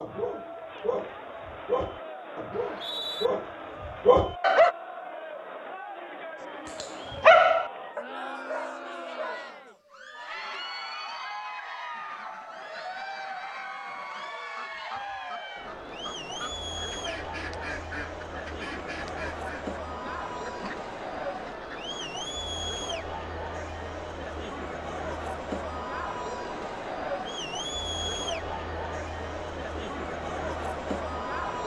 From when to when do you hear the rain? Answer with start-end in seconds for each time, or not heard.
not heard.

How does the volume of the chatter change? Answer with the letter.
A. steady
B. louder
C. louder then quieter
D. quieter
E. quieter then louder
B.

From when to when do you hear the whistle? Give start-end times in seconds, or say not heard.
2.5-3.3.